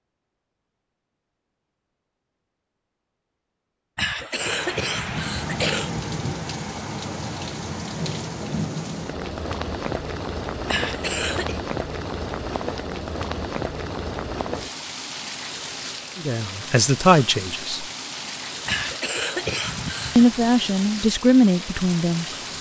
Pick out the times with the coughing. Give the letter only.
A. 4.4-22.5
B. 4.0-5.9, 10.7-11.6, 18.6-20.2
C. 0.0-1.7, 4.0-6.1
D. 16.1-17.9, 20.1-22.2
B.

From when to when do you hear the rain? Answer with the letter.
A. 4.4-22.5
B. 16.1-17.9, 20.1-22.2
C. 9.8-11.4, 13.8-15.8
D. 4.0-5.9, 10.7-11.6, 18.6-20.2
A.